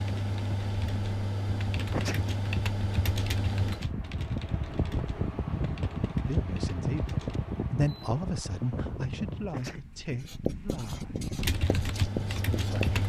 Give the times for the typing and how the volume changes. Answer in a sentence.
The typing can be heard from 0.0 to 7.4 s, getting louder then quieter; and briefly from 11.4 to 13.0 s.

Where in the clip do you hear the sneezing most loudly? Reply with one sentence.
The volume of the sneezing peaks at 2 seconds.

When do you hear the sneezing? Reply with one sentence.
You can hear the sneezing from 1.8 to 2.2 s and from 9.3 to 9.8 s.